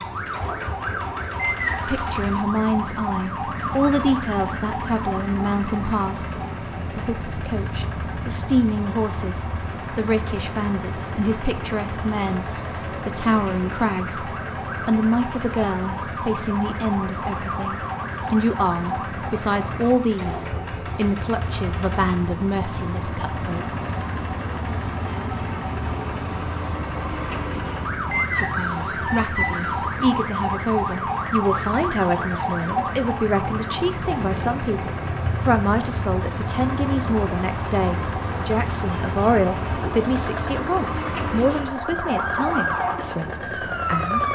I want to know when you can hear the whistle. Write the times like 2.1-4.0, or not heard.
1.4-2.1, 28.1-29.9.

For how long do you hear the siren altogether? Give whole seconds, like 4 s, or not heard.
44 s.